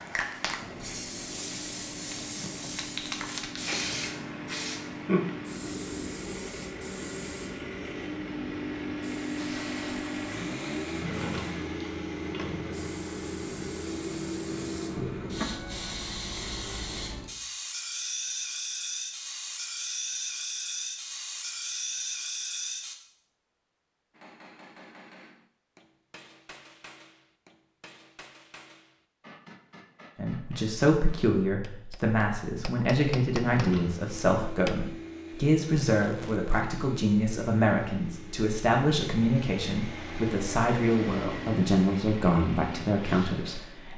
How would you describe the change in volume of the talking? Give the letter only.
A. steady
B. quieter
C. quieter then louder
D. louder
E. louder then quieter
A.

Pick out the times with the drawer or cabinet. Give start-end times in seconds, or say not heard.
10.9-12.9, 14.9-15.3, 33.4-34.0.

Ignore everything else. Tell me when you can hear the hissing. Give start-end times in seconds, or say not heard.
0.0-22.9.